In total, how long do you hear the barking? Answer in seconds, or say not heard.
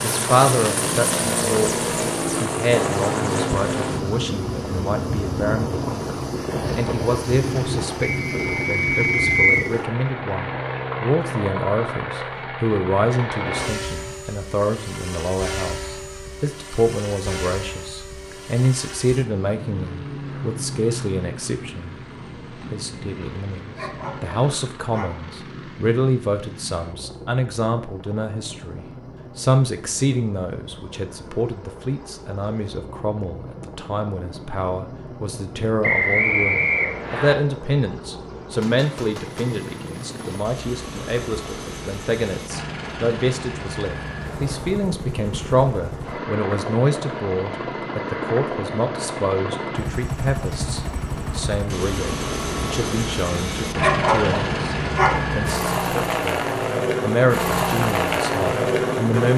3 s.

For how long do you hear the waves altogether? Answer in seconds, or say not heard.
not heard.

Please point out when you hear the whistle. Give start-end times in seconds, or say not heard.
8.2-9.7, 35.8-37.4.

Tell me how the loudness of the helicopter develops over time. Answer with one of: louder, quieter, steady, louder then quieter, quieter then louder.
quieter then louder.